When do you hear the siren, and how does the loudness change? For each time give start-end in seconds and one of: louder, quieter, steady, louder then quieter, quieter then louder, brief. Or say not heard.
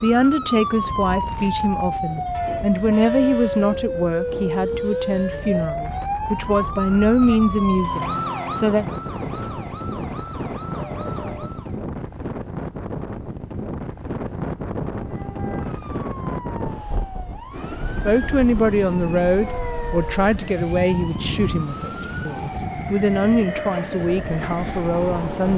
0.0-11.8 quieter
14.9-25.4 louder.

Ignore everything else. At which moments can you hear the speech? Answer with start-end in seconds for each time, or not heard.
0.0-8.8, 18.1-25.5.